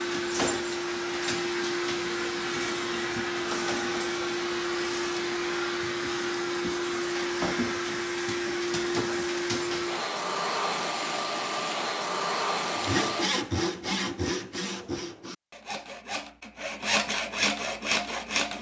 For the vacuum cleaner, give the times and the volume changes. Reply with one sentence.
You can hear the vacuum cleaner from 0.0 to 13.3 s, at a steady volume.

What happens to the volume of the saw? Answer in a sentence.
The volume of the saw goes down, then up.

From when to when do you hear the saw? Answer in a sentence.
The saw can be heard from 12.8 to 18.5 s.